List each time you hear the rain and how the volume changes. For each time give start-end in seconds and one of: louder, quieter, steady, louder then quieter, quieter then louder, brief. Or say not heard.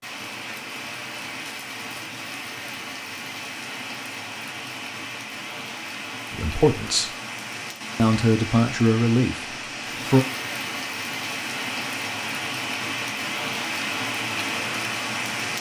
0.0-15.5 louder.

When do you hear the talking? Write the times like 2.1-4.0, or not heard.
6.3-7.1, 8.0-10.2.